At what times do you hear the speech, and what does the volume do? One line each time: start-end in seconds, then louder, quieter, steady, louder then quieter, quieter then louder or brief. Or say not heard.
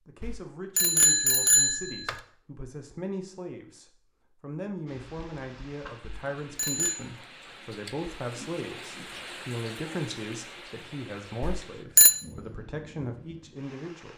0.1-14.1 steady.